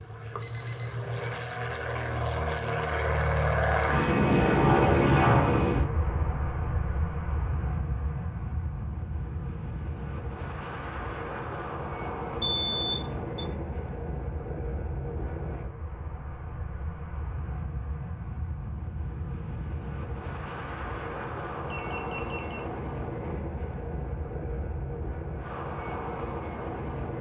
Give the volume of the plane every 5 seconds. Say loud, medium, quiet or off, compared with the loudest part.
loud, loud, medium, quiet, medium, medium.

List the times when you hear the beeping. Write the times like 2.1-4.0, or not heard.
0.4-1.2, 12.4-13.2, 21.6-22.7.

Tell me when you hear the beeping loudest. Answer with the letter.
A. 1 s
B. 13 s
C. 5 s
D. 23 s
B.